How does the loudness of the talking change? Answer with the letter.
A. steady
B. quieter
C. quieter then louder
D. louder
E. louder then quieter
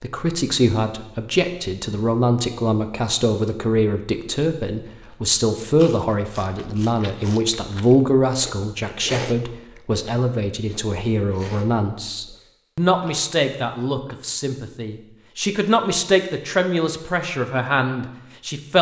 A.